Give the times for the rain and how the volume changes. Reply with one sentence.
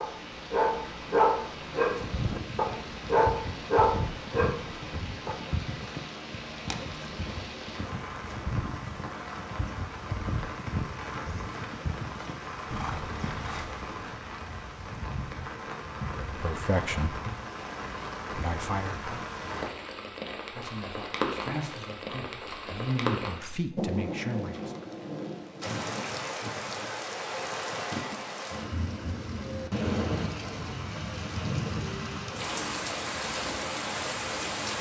You can hear the rain from 0.0 to 34.7 s, getting louder.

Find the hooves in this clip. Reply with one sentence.
The hooves can be heard from 1.9 to 13.9 s.